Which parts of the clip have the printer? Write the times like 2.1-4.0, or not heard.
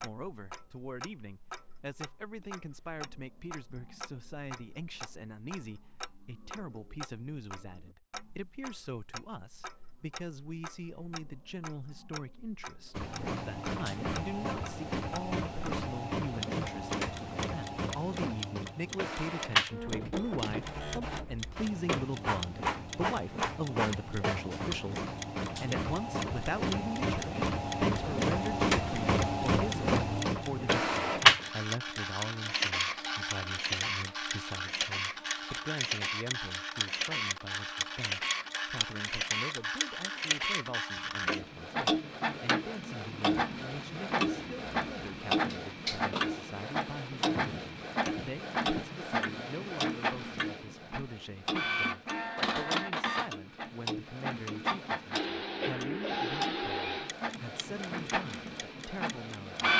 12.9-59.7.